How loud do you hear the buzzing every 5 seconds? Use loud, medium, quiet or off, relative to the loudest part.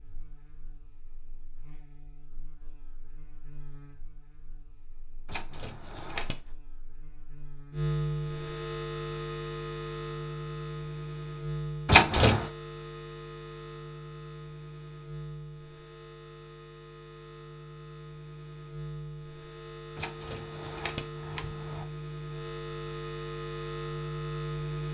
quiet, loud, loud, medium, loud.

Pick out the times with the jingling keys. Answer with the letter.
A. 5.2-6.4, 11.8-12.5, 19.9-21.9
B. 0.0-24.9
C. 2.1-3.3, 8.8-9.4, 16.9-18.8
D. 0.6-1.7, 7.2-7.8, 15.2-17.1
A.